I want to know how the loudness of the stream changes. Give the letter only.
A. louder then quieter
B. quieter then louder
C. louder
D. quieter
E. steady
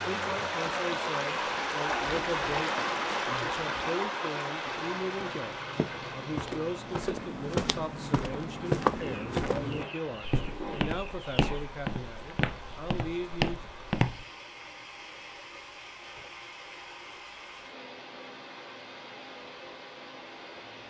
D.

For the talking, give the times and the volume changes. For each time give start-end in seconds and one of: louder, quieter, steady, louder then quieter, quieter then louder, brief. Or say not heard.
0.1-13.6 steady.